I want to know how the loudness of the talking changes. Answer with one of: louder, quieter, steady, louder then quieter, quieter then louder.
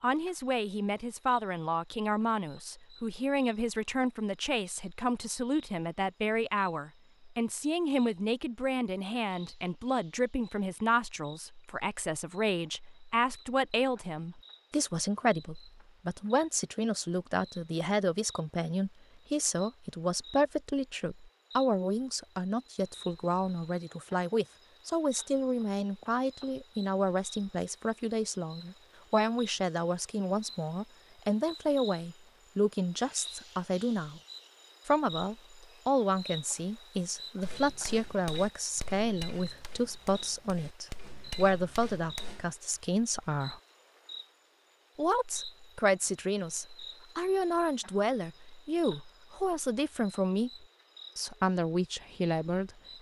steady.